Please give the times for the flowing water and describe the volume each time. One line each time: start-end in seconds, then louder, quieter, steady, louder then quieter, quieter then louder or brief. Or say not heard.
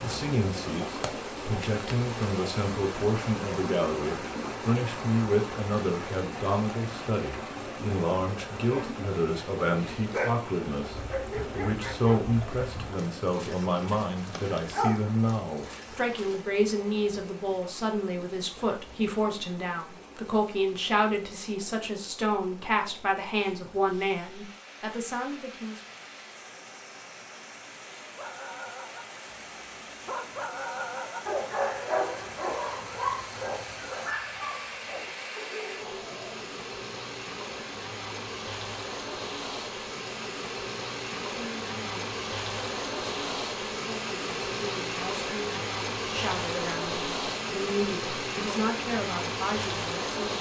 0.0-50.3 quieter then louder.